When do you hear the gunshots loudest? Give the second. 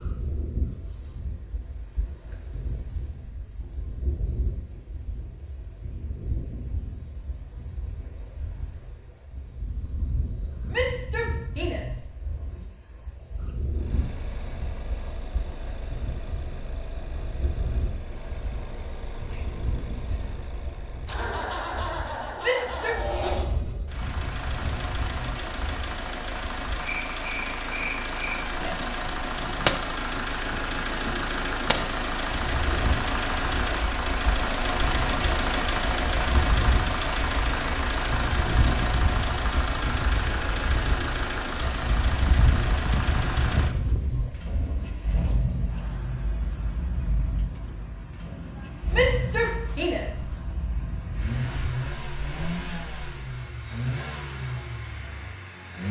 30 s.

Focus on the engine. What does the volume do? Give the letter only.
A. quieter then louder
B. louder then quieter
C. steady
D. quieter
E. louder
B.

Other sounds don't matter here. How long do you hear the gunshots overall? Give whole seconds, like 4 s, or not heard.
3 s.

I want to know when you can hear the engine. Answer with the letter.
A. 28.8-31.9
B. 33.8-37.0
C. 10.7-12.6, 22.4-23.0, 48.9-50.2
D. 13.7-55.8
D.